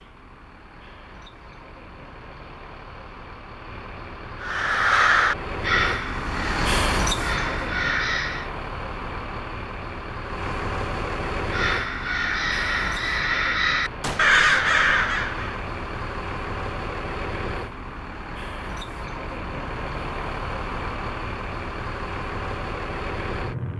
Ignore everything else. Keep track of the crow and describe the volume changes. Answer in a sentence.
The loudness of the crow goes down, then up.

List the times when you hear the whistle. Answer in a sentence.
The whistle can't be heard in this clip.